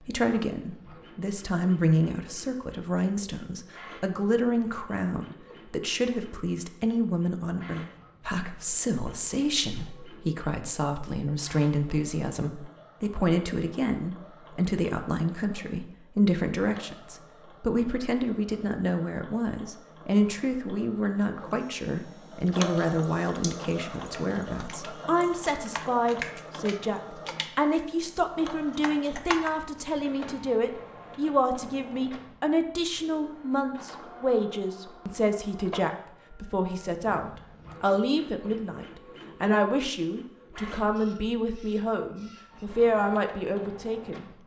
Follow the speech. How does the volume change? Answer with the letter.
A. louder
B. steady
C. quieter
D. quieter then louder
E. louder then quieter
B.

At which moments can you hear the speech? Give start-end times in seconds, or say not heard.
0.0-44.3.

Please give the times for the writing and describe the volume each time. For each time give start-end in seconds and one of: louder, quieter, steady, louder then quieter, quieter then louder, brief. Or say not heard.
not heard.